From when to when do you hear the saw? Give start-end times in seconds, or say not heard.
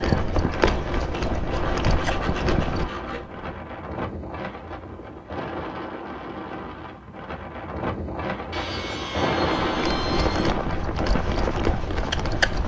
0.7-3.3, 8.5-10.6.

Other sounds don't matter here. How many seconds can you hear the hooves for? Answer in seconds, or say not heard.
7 s.